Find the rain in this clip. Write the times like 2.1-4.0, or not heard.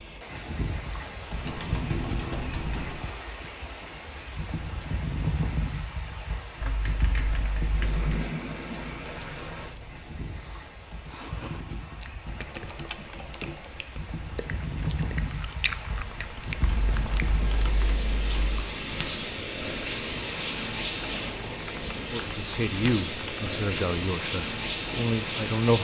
0.0-25.7.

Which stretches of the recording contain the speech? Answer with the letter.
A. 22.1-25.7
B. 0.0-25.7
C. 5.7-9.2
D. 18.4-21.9
A.